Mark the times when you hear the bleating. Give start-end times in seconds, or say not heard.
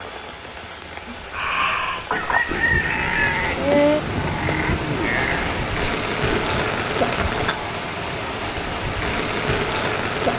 1.1-6.7.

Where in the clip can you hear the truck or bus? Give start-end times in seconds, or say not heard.
not heard.